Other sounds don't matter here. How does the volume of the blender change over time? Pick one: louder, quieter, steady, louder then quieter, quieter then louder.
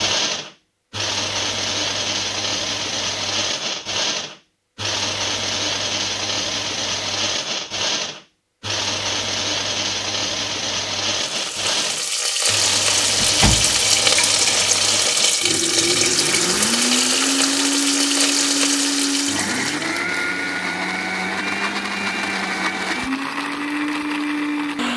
steady.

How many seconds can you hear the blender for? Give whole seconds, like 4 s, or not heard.
25 s.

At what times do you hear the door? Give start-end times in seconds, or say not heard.
13.2-14.1.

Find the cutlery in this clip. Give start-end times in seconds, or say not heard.
not heard.